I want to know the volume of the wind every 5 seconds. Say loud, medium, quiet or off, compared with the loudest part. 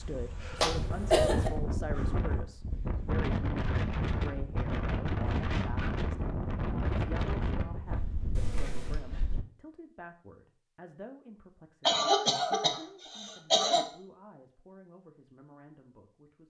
loud, loud, off, off.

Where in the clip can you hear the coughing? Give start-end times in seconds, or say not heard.
0.6-1.5, 8.3-9.0, 11.8-13.8.